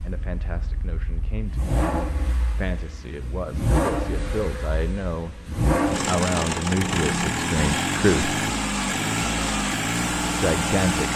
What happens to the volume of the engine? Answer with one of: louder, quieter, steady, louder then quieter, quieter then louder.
louder.